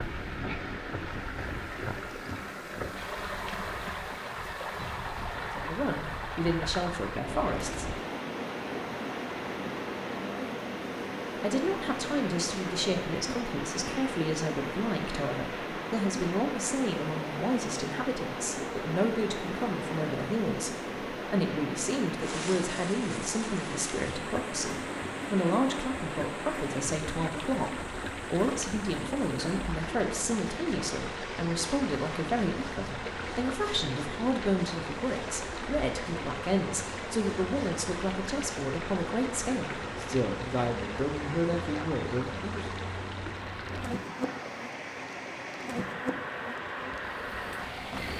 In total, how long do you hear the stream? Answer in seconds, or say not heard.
48 s.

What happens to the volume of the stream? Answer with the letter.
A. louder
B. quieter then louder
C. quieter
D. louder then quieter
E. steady
E.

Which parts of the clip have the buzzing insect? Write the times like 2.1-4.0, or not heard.
0.0-48.1.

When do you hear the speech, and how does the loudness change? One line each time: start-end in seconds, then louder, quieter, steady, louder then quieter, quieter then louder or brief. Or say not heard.
5.5-7.8 brief
11.4-42.6 steady.